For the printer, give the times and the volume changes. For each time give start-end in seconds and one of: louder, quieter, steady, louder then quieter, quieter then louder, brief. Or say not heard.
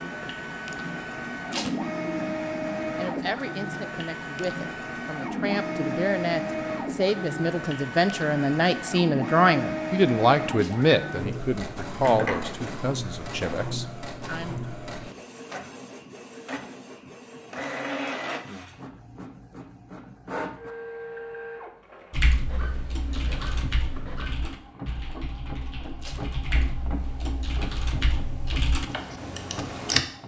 0.0-30.2 quieter.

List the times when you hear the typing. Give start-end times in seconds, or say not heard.
22.1-30.1.